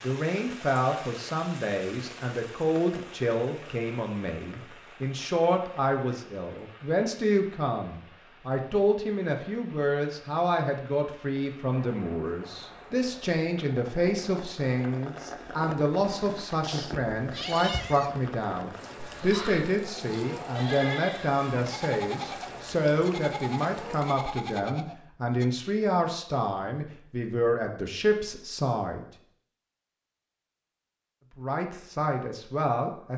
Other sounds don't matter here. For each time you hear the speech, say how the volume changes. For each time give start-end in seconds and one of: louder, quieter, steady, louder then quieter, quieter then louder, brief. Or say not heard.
0.0-29.1 steady
31.4-33.1 brief.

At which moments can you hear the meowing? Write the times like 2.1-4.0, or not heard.
16.6-18.2.